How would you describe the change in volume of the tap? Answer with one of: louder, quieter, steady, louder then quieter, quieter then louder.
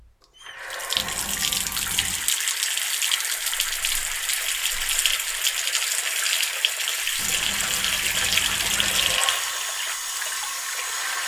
steady.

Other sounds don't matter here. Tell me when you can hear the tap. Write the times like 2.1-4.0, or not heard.
0.4-11.2.